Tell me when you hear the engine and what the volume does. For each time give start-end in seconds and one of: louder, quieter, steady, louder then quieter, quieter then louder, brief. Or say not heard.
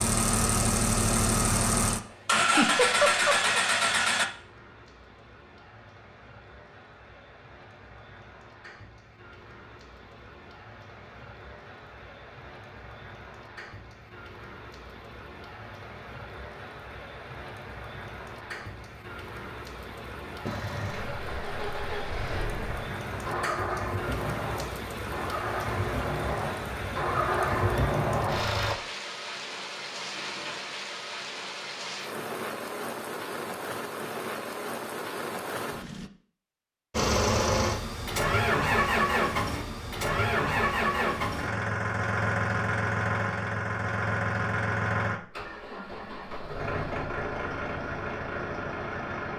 0.0-4.2 steady
20.4-28.8 louder
36.9-49.3 quieter.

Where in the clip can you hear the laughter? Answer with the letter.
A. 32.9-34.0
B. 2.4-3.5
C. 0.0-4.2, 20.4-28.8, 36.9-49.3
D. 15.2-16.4
B.